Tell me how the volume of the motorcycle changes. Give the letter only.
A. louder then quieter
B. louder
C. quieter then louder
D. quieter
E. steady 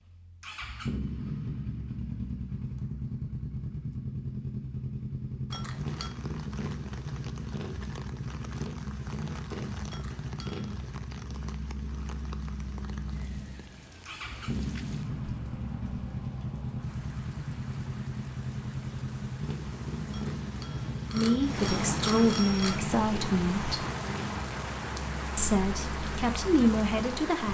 E.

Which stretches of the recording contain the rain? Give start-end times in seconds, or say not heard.
5.6-27.4.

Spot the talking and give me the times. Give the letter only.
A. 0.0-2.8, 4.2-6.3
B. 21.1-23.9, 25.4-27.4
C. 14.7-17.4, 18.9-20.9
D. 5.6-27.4
B.